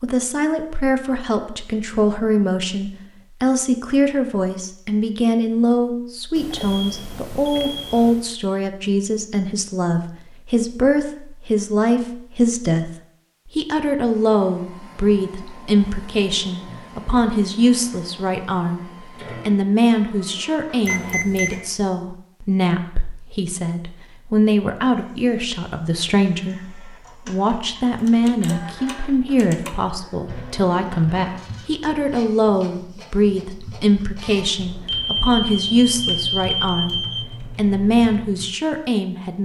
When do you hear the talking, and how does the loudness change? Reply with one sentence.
The talking can be heard from 0.0 to 12.9 s, at a steady volume; and from 13.6 to 39.3 s, at a steady volume.